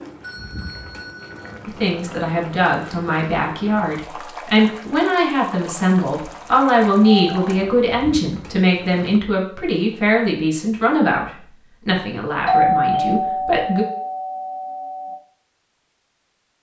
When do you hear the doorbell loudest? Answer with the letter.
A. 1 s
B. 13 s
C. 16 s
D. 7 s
B.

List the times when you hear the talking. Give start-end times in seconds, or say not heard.
1.6-13.8.